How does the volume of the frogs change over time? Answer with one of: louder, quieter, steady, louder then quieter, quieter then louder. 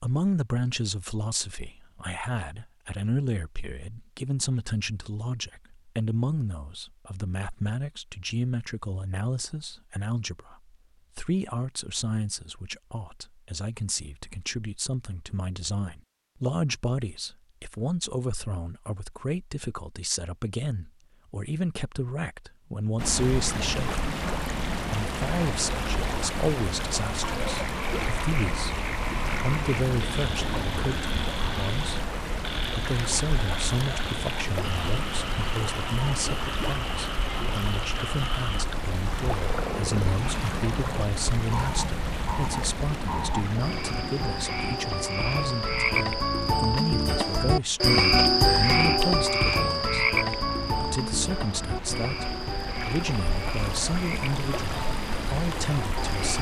louder then quieter.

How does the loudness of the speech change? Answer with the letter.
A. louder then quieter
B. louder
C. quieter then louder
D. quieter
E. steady
E.